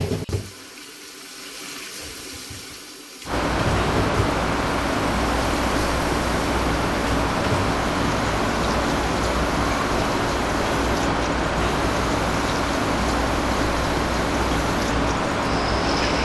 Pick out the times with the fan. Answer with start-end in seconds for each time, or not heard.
3.2-16.1.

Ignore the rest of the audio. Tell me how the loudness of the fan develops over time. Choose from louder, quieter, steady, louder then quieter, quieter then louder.
steady.